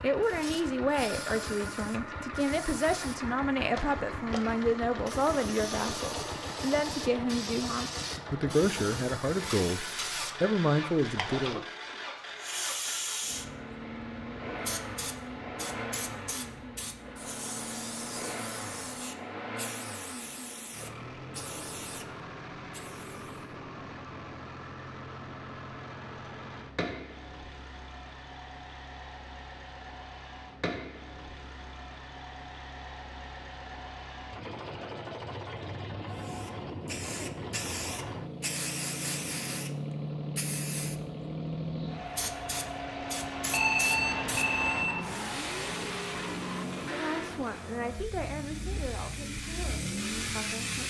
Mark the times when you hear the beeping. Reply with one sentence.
The beeping can be heard from 43.5 to 45.0 s.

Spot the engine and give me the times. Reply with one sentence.
You can hear the engine from 0.0 to 50.8 s.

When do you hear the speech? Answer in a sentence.
You can hear the speech from 0.0 to 11.6 s and from 46.9 to 50.8 s.